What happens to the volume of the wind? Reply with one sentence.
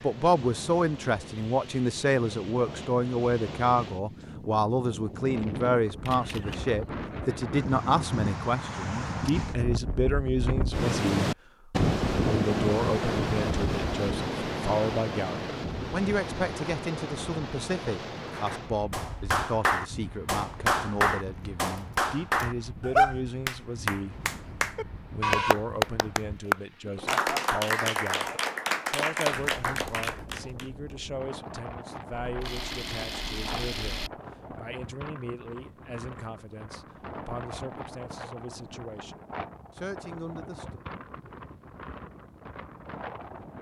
The loudness of the wind goes up, then down.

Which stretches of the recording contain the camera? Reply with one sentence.
You can hear the camera from 6.0 to 6.6 s, from 21.9 to 22.5 s and from 32.2 to 34.1 s.